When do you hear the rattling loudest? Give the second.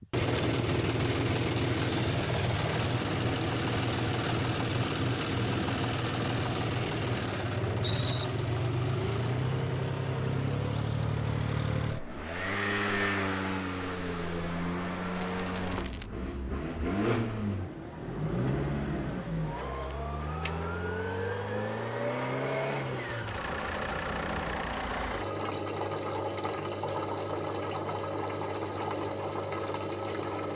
8 s.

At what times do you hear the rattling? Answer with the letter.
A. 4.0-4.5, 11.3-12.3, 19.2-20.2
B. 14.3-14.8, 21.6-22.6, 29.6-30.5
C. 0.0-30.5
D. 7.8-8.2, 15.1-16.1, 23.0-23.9
D.